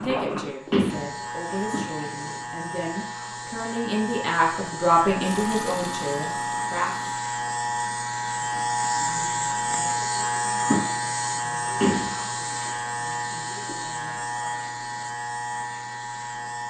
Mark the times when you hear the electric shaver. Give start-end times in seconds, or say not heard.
0.0-16.6.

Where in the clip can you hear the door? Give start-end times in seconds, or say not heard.
0.7-2.4, 11.8-12.7.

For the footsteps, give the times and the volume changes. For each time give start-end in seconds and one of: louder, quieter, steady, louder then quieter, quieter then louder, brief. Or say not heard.
not heard.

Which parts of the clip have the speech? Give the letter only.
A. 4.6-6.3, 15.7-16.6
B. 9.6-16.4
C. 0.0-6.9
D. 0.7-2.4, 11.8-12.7
C.